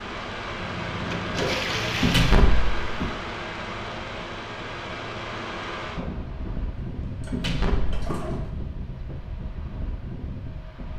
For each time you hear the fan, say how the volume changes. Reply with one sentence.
The fan can be heard from 0.0 to 10.9 s, getting quieter.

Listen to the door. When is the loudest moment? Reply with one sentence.
The loudest moment of the door is at 2 seconds.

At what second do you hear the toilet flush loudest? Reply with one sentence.
The loudest moment of the toilet flush is at 2 seconds.